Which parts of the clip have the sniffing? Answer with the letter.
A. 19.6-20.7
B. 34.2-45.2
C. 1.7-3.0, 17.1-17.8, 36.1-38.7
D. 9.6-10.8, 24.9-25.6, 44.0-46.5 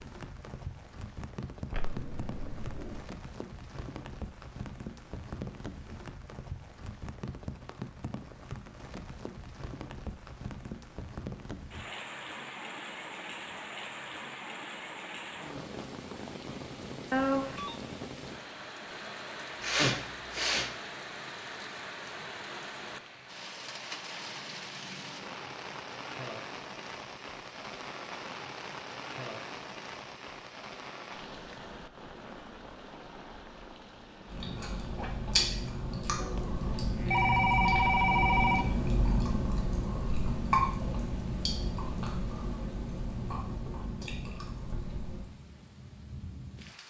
A.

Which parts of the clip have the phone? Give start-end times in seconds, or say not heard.
1.7-3.0, 17.1-17.8, 36.1-38.7.